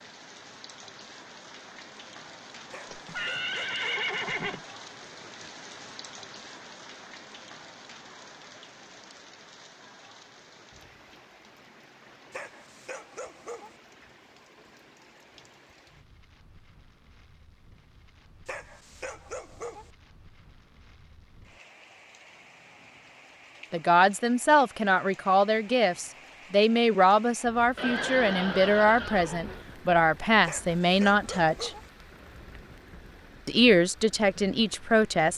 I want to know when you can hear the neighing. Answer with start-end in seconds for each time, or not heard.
2.9-4.6, 27.8-29.6.